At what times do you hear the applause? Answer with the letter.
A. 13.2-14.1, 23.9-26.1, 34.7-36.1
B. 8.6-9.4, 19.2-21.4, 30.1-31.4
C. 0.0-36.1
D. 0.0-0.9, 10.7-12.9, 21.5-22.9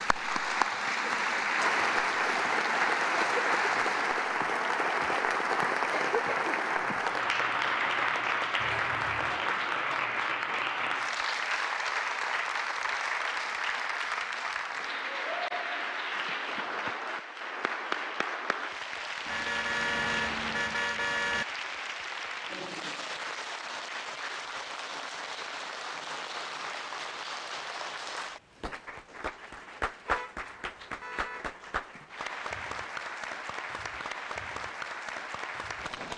C.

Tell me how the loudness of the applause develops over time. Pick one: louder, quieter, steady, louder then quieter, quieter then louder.
quieter.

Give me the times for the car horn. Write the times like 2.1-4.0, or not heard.
8.6-9.4, 19.2-21.4, 30.1-31.4.